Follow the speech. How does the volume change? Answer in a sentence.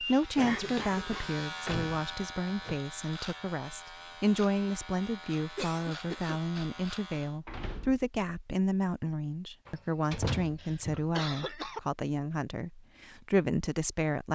The loudness of the speech stays about the same.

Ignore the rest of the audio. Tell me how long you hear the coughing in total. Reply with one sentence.
You can hear the coughing for 3 seconds altogether.